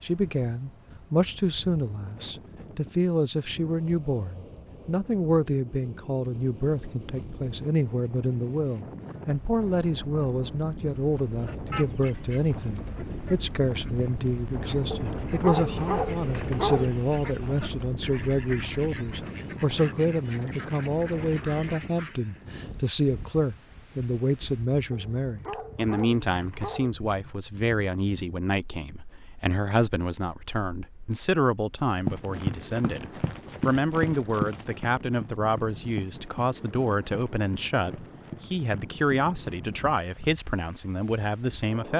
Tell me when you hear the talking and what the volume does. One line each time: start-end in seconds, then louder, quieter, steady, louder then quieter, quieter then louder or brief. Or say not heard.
0.0-41.9 steady.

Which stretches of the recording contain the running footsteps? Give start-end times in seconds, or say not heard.
31.9-40.3.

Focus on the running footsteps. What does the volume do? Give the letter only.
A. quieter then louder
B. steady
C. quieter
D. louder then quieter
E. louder
C.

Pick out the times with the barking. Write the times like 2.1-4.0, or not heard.
14.9-16.9, 24.9-26.9.